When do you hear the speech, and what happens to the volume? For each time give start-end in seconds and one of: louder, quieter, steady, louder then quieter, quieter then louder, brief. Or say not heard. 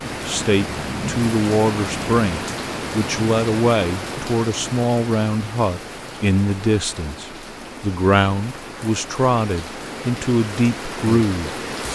0.2-11.9 steady.